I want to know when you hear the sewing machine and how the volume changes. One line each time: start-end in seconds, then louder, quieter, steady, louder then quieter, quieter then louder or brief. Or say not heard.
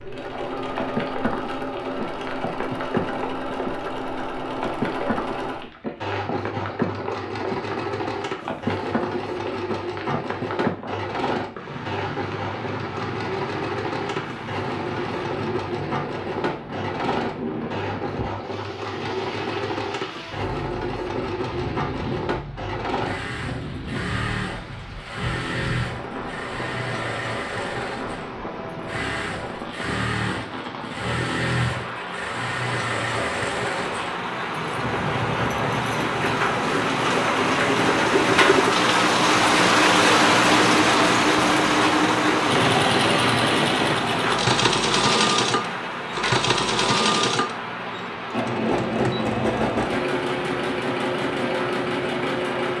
0.0-52.7 louder.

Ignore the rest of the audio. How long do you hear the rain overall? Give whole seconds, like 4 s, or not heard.
53 s.